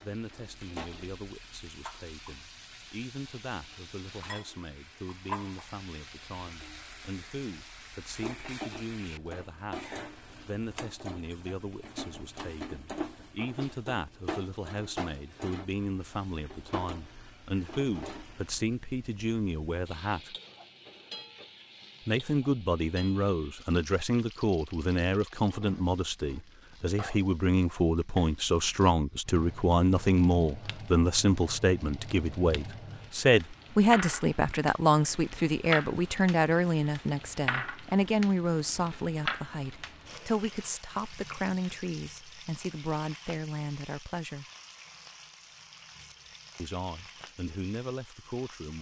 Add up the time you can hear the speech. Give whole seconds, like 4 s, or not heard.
45 s.